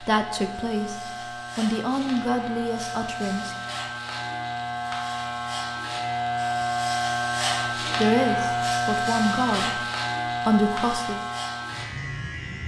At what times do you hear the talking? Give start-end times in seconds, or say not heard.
0.0-3.5, 8.0-9.8, 10.4-11.2.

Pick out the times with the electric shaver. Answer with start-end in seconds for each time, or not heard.
0.0-12.6.